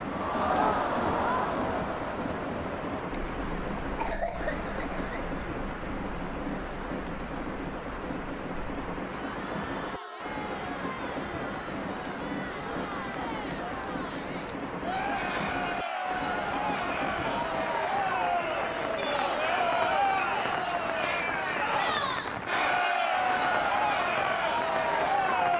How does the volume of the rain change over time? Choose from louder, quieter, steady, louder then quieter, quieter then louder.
steady.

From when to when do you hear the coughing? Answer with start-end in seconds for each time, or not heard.
4.0-5.3.